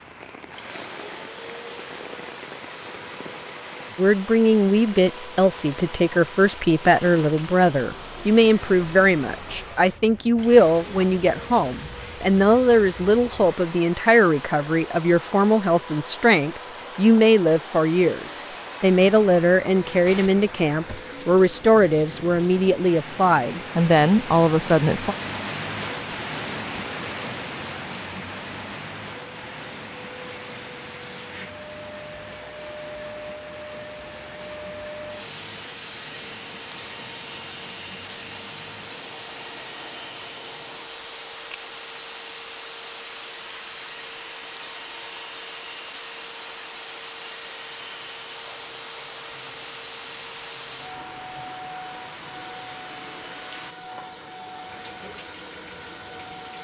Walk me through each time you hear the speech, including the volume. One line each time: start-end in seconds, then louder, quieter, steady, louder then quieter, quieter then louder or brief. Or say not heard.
4.0-25.1 steady.